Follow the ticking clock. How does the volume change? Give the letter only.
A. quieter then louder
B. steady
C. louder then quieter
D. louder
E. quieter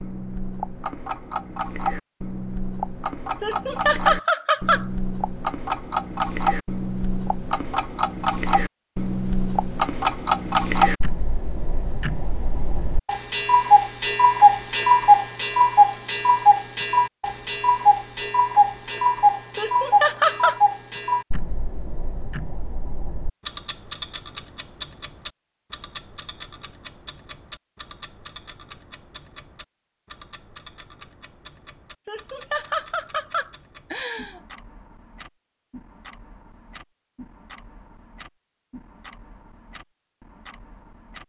C.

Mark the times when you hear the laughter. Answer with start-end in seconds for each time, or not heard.
3.4-4.8, 19.6-20.6, 32.0-34.4.